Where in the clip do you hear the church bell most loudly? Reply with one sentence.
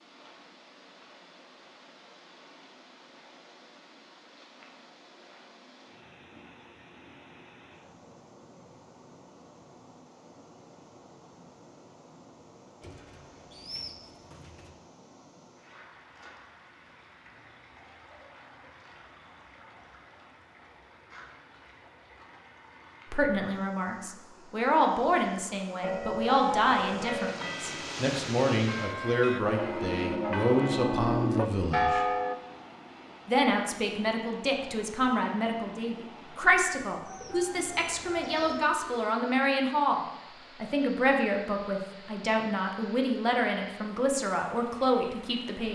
The volume of the church bell peaks at 32 seconds.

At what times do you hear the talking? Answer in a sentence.
The talking can be heard from 23.1 to 32.0 s, from 33.2 to 40.0 s and from 40.6 to 45.7 s.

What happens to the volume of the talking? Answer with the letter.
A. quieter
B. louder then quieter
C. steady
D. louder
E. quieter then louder
C.